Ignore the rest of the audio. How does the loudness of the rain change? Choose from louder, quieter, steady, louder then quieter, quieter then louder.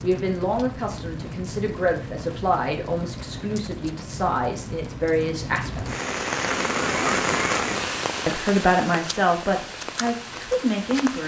louder then quieter.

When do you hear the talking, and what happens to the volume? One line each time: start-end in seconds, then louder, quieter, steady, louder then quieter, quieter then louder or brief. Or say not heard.
0.0-6.0 steady
8.2-11.2 brief.